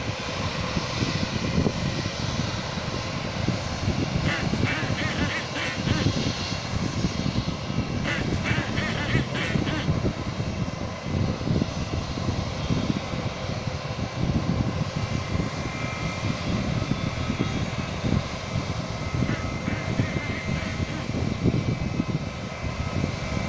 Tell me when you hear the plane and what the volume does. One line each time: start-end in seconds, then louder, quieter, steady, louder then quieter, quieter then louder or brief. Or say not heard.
0.0-23.4 steady.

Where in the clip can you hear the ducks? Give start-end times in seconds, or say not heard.
4.2-6.1, 8.0-9.9, 19.2-21.1.